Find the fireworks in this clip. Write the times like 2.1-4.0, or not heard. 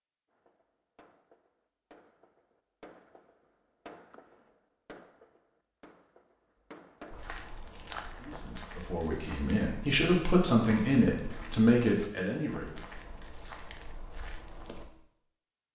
0.3-7.3.